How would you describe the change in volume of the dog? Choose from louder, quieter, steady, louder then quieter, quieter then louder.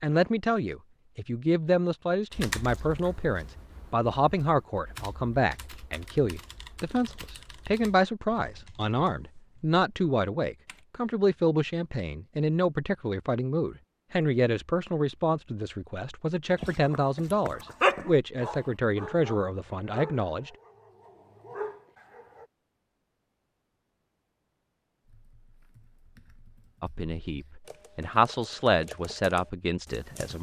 quieter then louder.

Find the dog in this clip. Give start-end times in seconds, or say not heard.
16.6-22.4.